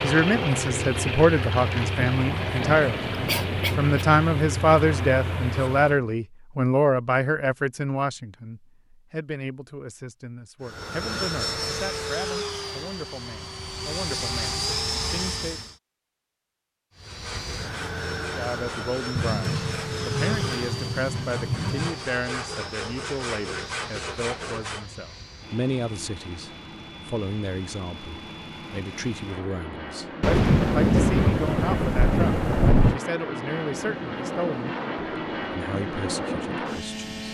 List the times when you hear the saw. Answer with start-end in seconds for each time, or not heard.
17.0-24.9.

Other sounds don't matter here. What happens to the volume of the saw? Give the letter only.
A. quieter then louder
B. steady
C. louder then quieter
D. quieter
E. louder
E.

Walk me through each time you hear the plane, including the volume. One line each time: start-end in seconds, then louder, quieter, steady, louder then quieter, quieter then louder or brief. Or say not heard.
0.0-6.2 steady
10.6-15.8 quieter then louder
16.9-37.2 quieter then louder.